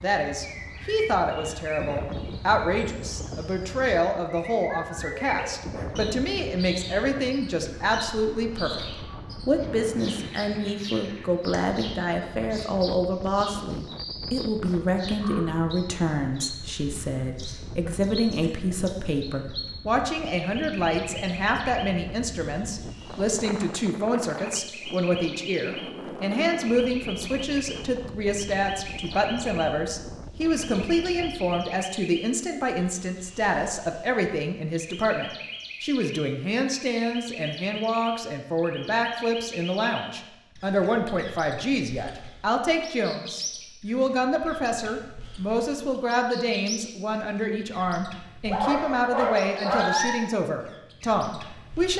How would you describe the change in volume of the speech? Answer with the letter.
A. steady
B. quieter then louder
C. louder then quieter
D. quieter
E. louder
A.